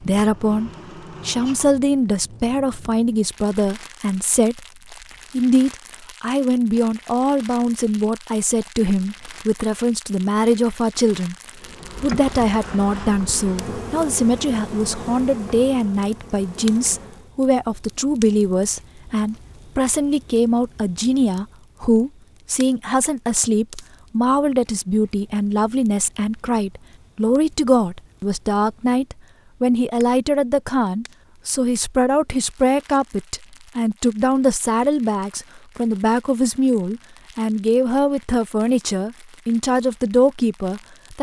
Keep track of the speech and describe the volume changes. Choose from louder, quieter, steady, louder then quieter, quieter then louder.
steady.